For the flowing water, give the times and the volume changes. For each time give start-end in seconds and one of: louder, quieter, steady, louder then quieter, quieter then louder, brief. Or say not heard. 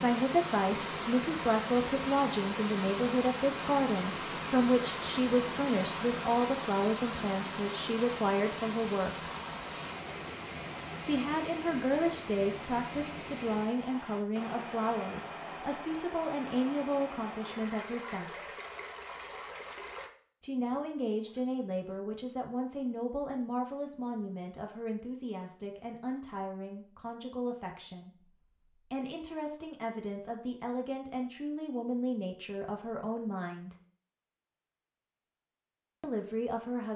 0.0-20.1 quieter.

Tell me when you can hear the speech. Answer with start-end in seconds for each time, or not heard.
0.0-9.3, 11.0-18.5, 20.4-33.8, 36.0-36.9.